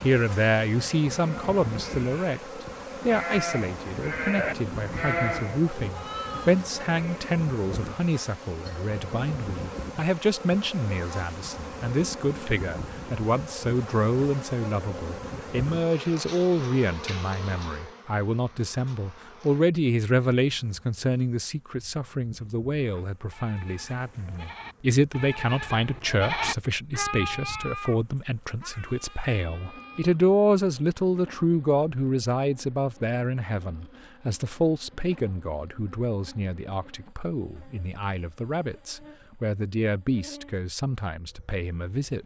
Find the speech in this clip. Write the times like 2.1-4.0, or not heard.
0.0-42.2.